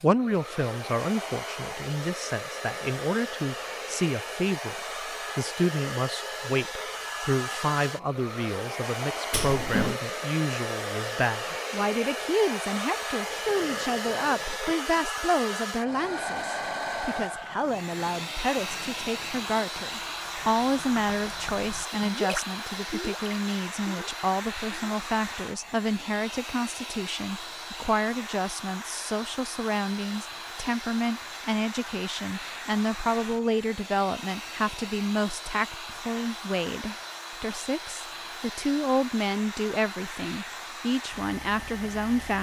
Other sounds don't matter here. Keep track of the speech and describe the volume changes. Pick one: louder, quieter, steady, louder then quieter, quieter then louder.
steady.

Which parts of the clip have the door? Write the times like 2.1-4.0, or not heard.
9.3-10.0.